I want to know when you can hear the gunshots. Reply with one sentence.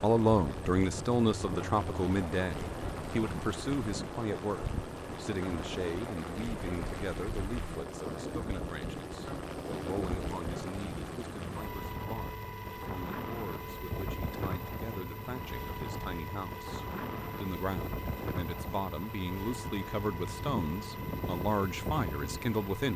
You can't hear the gunshots here.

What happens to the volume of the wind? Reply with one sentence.
The loudness of the wind stays about the same.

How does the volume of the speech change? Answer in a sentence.
The loudness of the speech goes down, then up.